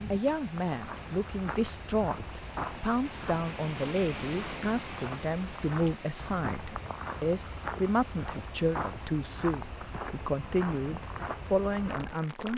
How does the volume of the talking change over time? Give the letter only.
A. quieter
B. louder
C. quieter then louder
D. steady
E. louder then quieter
D.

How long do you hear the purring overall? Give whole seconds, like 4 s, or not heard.
not heard.